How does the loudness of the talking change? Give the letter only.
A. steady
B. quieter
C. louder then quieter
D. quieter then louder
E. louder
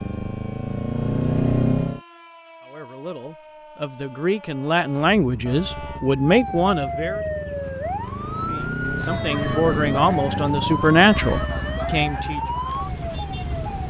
E.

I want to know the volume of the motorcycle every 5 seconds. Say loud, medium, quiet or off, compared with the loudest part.
loud, medium, medium.